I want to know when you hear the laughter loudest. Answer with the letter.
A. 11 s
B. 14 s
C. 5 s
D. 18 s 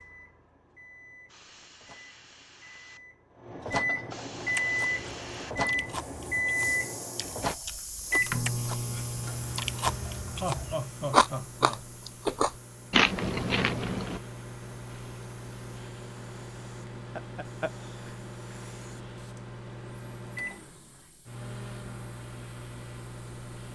A.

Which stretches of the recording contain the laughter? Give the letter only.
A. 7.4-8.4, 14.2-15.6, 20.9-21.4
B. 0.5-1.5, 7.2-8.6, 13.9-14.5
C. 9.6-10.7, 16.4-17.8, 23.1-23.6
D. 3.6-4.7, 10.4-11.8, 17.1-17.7
D.